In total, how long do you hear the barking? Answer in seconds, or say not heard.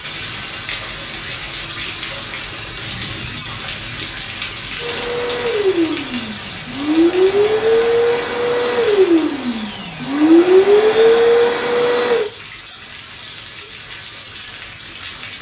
not heard.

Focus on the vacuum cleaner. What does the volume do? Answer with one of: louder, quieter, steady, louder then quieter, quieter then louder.
louder.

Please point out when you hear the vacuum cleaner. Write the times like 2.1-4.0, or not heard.
4.8-12.3.